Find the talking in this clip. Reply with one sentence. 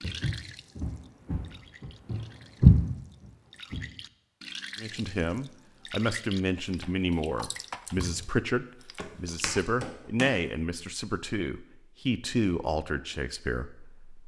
The talking can be heard from 4.8 to 14.2 s.